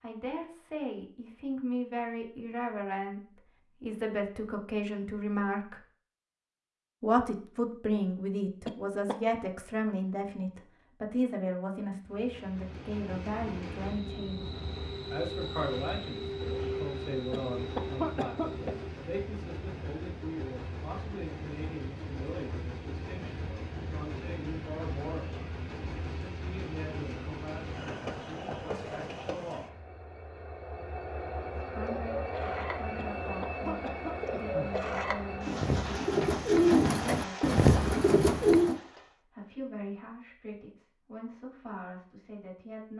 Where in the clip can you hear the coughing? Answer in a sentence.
The coughing can be heard from 8.7 to 9.3 s, from 17.3 to 18.8 s and from 33.0 to 34.8 s.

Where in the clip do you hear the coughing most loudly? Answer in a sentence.
The volume of the coughing peaks at 18 seconds.